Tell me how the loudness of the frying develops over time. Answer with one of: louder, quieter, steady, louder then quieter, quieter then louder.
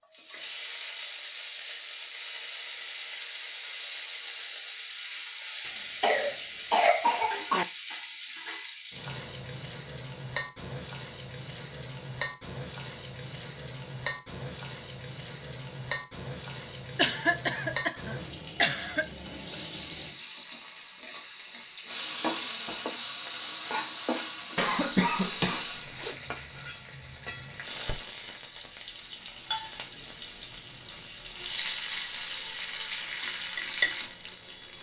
steady.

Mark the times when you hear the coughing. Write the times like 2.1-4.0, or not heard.
5.7-7.7, 16.9-19.1, 24.6-26.1.